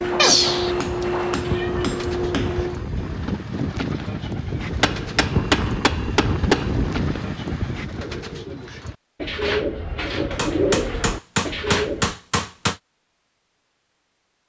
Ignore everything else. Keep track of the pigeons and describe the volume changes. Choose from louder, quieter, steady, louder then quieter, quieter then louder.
louder.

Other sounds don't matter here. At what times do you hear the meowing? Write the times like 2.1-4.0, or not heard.
0.1-2.0.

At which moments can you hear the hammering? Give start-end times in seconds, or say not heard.
0.0-2.8, 4.8-6.8, 10.3-12.8.